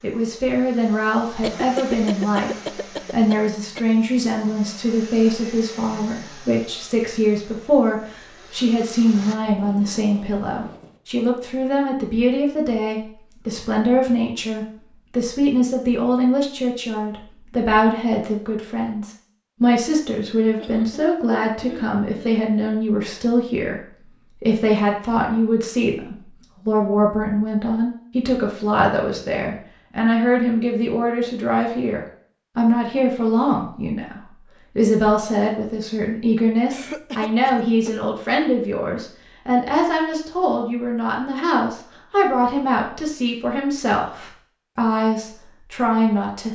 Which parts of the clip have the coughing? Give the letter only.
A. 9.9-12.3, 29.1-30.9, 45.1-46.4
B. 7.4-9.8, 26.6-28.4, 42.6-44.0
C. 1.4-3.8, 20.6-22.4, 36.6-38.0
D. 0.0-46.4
C.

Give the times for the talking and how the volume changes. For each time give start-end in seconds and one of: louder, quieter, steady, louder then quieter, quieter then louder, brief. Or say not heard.
0.0-46.4 steady.